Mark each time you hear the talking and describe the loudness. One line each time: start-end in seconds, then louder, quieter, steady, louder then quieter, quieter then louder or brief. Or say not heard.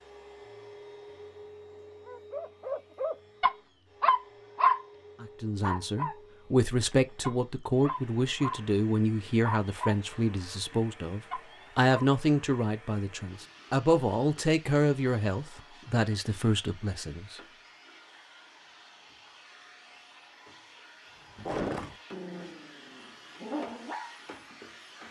5.2-17.4 steady.